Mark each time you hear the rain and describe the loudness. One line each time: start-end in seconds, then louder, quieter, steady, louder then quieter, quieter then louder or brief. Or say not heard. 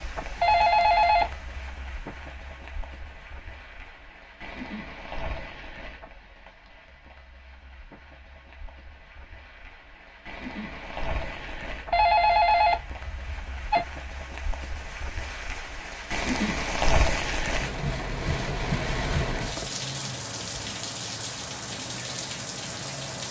0.0-23.2 louder.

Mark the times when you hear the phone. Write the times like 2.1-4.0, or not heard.
0.4-1.5, 11.9-13.8.